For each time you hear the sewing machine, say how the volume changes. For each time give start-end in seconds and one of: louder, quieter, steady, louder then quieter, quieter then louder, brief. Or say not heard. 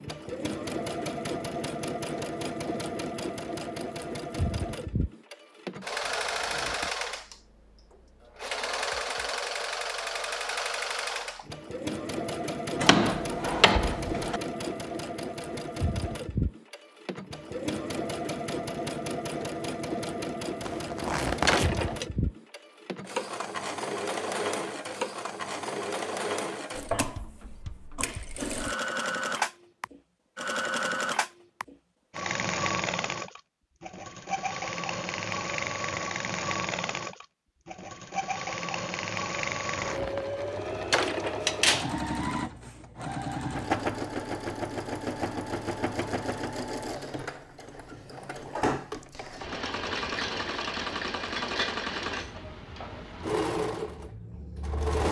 0.0-55.0 steady.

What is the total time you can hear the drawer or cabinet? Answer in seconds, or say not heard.
3 s.